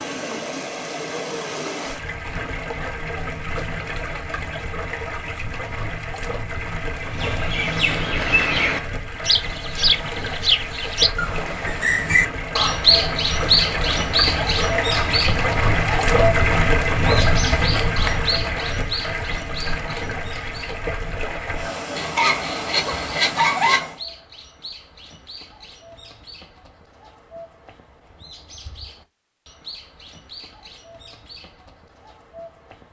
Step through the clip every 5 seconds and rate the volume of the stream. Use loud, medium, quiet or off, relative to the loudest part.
medium, medium, medium, loud, medium, off, off.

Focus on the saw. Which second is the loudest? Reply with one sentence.
The volume of the saw peaks at 23 seconds.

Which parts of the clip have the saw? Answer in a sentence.
The saw can be heard from 21.9 to 23.8 s.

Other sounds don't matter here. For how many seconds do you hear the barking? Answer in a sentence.
You can hear the barking for 2 seconds altogether.